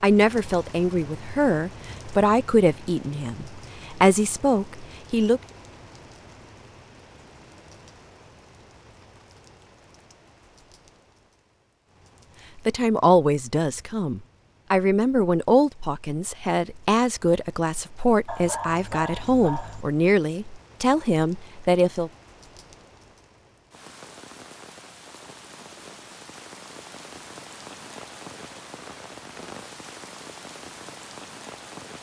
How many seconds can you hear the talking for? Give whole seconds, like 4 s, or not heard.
15 s.